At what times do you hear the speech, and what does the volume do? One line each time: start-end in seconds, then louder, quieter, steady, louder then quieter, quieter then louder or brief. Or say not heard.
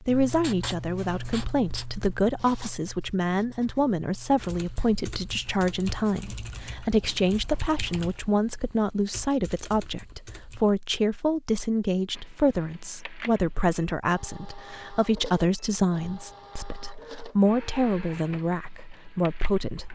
0.0-19.8 steady.